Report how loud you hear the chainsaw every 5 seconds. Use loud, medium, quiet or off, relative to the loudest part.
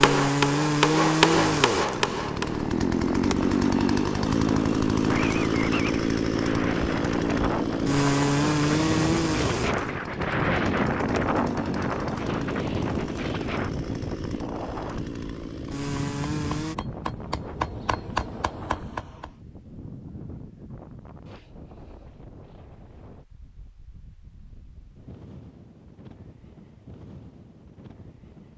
loud, loud, medium, medium, off, off.